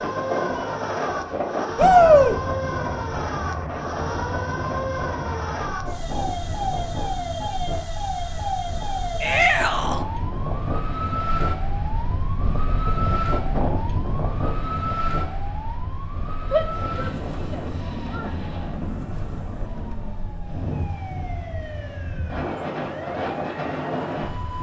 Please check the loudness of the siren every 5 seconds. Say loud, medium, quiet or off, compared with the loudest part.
loud, loud, loud, medium, medium.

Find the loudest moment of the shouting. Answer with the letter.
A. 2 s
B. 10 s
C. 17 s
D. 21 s
A.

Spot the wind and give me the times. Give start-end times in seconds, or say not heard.
0.0-24.5.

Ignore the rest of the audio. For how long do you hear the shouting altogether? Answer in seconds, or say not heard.
3 s.